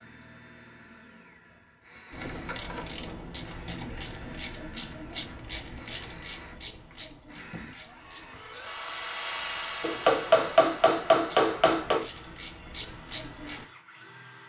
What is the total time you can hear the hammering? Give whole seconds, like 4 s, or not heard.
2 s.